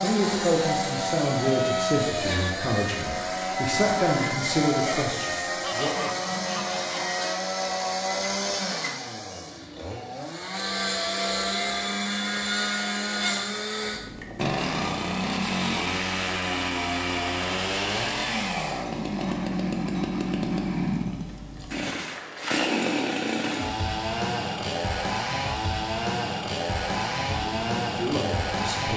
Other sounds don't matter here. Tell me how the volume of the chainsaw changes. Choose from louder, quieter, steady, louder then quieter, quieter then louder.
steady.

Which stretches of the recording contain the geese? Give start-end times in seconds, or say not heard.
5.6-7.2.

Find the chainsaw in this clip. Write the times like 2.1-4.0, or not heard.
0.0-28.9.